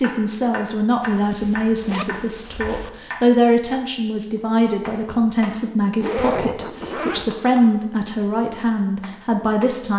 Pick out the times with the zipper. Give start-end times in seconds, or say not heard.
1.0-2.9, 6.0-7.3.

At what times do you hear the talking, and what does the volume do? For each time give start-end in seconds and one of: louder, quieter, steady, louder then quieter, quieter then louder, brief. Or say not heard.
0.0-9.9 steady.